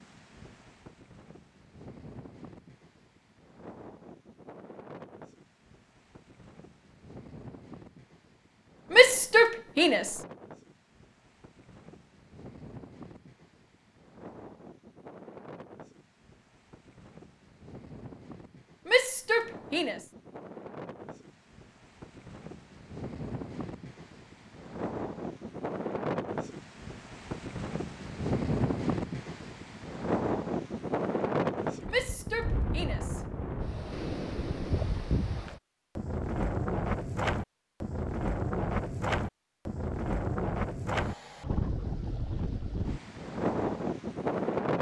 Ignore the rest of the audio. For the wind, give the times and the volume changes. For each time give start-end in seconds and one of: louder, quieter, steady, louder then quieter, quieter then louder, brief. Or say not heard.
0.0-44.7 louder.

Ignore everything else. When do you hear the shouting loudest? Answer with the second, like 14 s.
9 s.